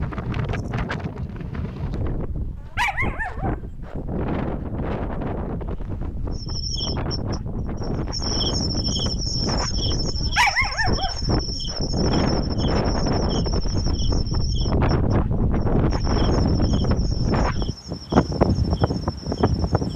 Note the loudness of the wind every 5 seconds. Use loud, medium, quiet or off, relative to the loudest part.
medium, medium, loud, loud.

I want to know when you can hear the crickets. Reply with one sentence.
You can hear the crickets from 6.3 to 19.9 s.